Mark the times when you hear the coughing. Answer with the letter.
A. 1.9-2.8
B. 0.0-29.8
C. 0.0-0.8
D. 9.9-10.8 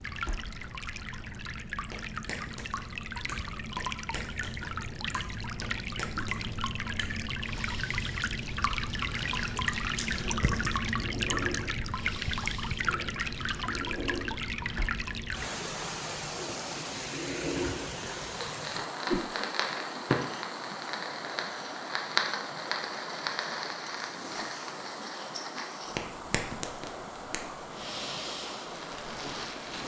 D.